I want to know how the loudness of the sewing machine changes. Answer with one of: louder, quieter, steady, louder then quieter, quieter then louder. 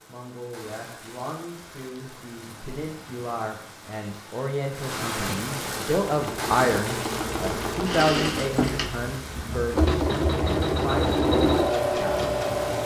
louder.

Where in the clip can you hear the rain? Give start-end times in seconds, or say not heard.
0.0-12.8.